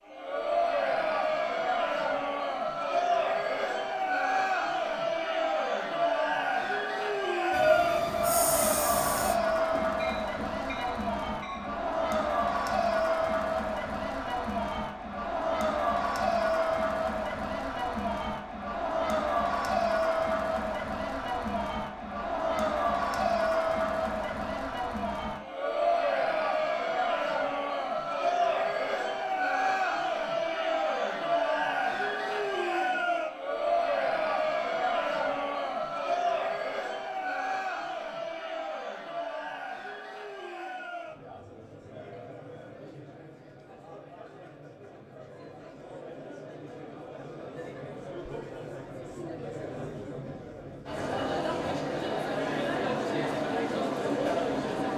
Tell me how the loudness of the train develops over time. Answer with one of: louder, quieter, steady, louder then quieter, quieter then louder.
quieter.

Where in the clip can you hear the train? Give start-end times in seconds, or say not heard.
7.5-11.9.